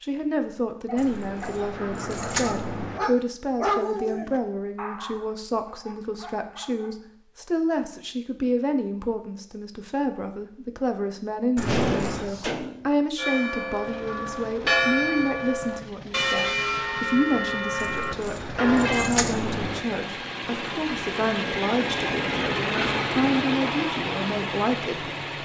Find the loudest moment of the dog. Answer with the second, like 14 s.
4 s.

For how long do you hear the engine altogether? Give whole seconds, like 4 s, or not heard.
12 s.